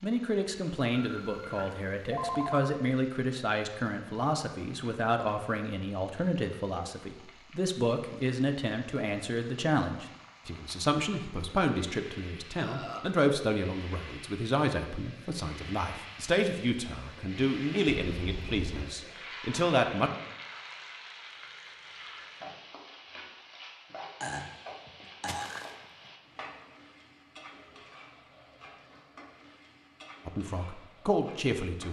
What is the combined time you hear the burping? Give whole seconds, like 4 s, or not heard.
2 s.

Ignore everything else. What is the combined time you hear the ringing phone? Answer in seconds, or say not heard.
3 s.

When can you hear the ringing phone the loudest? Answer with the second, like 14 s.
2 s.